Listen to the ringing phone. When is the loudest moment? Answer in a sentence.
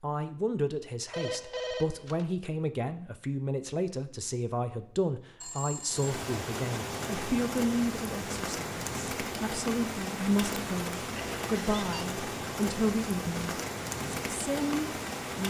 The volume of the ringing phone peaks at 2 seconds.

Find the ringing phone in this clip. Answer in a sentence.
The ringing phone can be heard from 1.1 to 2.3 s, from 5.4 to 6.1 s and from 11.2 to 12.1 s.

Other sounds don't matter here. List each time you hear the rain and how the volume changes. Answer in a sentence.
You can hear the rain from 5.8 to 15.4 s, at a steady volume.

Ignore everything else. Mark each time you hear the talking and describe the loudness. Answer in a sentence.
You can hear the talking from 0.0 to 15.4 s, at a steady volume.